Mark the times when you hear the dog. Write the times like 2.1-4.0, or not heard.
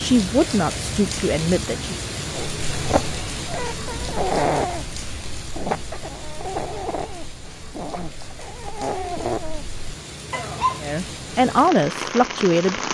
2.3-10.8.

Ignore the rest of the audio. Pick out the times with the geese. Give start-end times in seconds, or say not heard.
not heard.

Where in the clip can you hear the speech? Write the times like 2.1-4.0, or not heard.
0.0-1.9, 10.8-12.8.